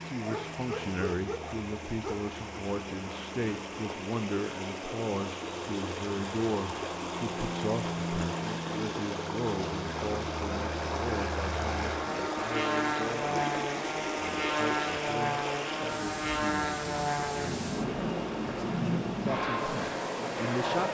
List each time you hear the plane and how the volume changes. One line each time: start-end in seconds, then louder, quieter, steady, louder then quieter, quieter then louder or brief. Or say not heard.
0.0-20.8 louder.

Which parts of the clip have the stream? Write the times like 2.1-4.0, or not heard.
0.0-20.8.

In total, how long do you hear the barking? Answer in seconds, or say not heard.
2 s.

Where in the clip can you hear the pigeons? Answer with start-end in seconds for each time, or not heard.
not heard.